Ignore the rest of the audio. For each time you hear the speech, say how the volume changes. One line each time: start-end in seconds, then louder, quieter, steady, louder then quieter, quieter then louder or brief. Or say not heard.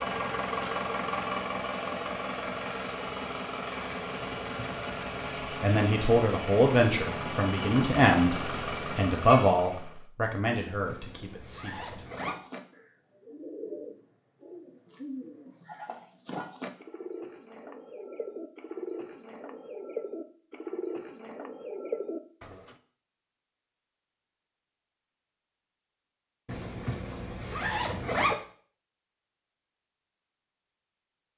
5.6-12.1 quieter.